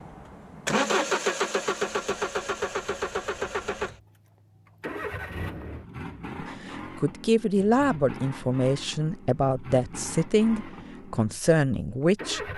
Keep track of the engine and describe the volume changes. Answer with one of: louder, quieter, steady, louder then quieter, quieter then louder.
quieter.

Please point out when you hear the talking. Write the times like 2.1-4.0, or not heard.
6.7-12.5.